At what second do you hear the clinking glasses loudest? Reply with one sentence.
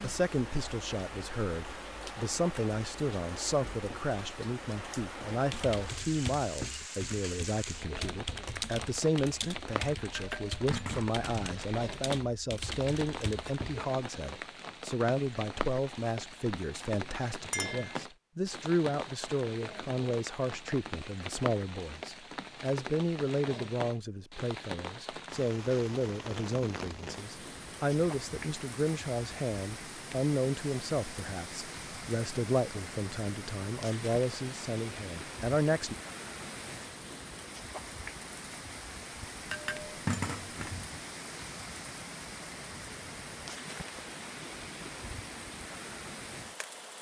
The volume of the clinking glasses peaks at 40 seconds.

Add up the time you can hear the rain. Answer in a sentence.
You can hear the rain for 47 seconds altogether.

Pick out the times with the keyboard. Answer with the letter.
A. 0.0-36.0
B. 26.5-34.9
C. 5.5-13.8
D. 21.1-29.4
C.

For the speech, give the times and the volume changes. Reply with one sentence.
You can hear the speech from 0.0 to 36.0 s, at a steady volume.